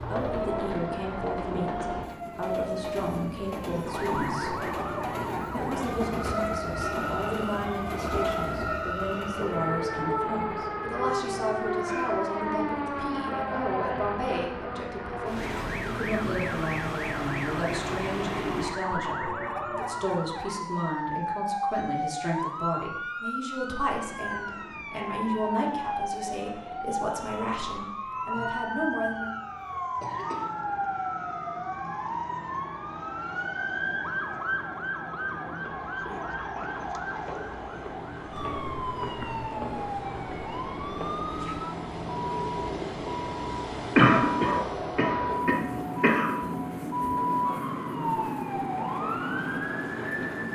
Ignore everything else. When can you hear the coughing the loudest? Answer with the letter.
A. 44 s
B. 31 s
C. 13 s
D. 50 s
A.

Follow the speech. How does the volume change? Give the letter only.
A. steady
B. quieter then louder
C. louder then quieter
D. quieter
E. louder
A.